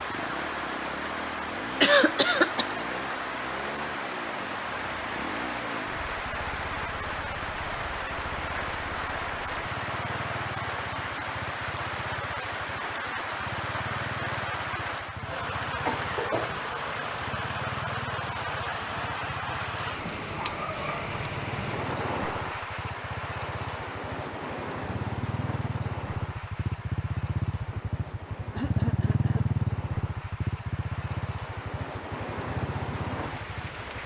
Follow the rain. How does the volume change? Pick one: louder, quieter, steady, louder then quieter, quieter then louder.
quieter.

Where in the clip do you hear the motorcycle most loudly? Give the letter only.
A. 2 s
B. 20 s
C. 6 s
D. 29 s
D.